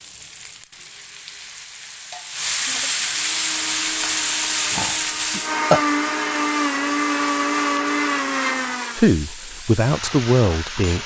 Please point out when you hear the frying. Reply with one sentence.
You can hear the frying from 0.0 to 11.0 s.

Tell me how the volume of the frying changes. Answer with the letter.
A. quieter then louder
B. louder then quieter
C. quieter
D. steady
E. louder
B.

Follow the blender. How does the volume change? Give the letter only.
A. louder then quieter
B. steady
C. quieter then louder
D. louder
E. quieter
D.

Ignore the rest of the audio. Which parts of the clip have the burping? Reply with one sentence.
The burping can be heard from 4.7 to 5.8 s.